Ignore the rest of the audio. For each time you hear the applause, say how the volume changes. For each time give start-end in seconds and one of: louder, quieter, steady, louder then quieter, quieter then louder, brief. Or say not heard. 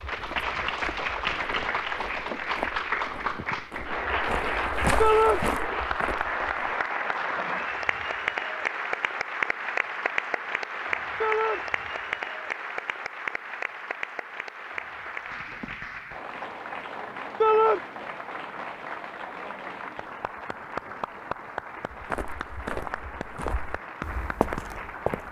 0.0-25.2 quieter.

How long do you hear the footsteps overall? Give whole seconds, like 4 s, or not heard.
10 s.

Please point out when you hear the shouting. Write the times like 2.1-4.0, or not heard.
5.0-5.4, 11.2-11.6, 17.4-17.8.